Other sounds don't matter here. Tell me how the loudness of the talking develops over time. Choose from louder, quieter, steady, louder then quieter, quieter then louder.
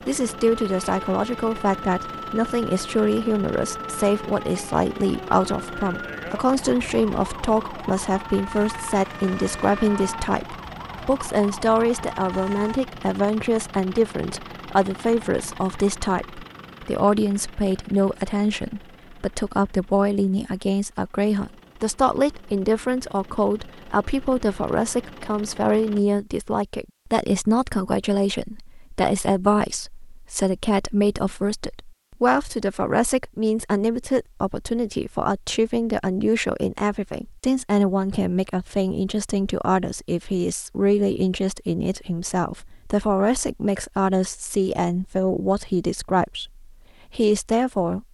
steady.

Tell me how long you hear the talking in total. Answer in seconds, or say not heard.
48 s.